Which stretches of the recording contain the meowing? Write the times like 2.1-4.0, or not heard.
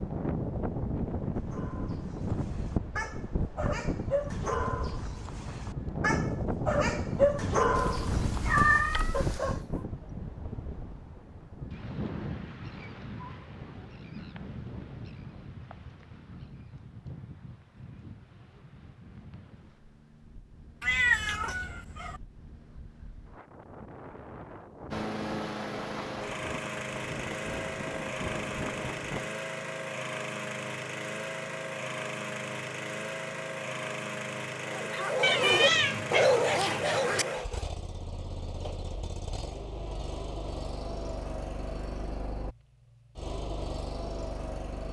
7.8-9.4, 20.8-22.2, 35.2-37.2.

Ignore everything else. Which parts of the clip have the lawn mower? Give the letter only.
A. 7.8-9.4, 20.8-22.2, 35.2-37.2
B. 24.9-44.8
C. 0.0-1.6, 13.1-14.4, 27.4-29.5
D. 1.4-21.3
B.